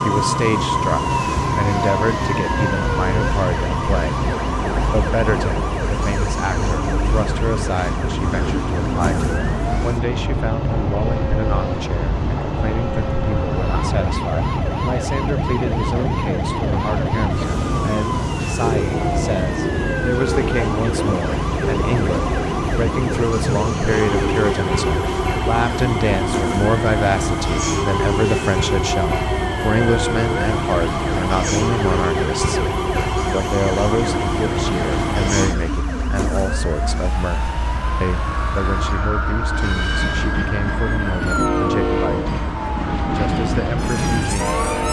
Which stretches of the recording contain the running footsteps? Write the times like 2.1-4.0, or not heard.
not heard.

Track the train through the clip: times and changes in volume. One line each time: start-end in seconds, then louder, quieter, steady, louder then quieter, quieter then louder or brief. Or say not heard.
0.0-44.8 steady.